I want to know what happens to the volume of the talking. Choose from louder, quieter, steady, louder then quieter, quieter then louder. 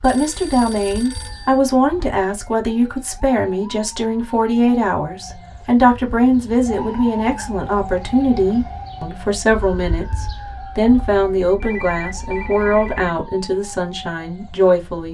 steady.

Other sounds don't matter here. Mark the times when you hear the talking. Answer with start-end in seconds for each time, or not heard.
0.0-15.1.